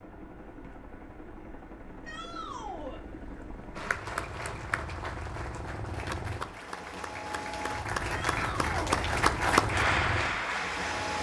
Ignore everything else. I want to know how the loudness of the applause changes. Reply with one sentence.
The loudness of the applause goes up.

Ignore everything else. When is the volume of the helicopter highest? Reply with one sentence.
The loudest moment of the helicopter is at 10 seconds.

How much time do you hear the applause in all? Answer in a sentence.
You can hear the applause for 7 seconds altogether.